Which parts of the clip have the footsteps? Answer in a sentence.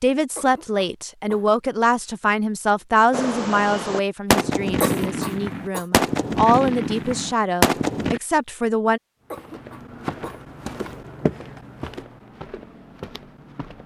You can hear the footsteps from 9.3 to 13.8 s.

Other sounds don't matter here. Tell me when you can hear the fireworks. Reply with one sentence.
You can hear the fireworks from 3.1 to 8.2 s.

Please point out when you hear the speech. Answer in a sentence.
The speech can be heard from 0.0 to 9.0 s.